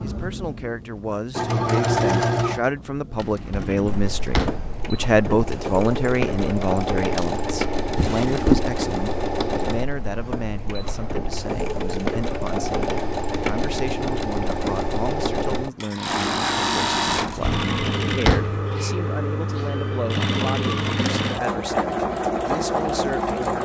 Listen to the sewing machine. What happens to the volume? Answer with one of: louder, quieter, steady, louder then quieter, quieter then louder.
steady.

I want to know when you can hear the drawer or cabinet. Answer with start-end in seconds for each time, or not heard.
3.1-4.7, 8.0-8.7, 17.1-18.6.